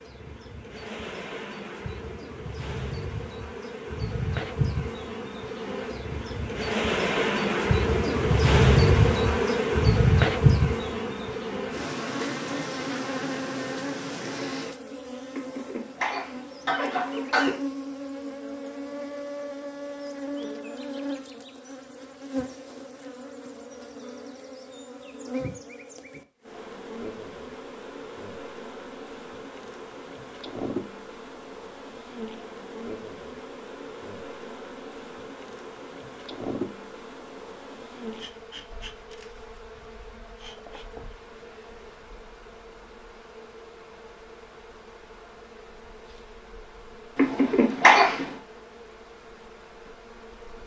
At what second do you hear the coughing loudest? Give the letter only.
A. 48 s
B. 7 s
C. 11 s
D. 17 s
A.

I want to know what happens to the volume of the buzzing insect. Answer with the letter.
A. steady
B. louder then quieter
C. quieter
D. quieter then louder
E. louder
C.